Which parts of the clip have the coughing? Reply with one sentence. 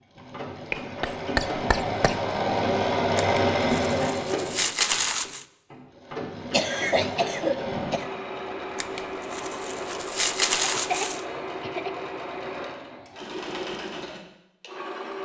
You can hear the coughing from 0.7 to 2.1 s, from 6.5 to 8.1 s and from 10.6 to 11.9 s.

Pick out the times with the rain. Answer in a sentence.
You can't hear the rain here.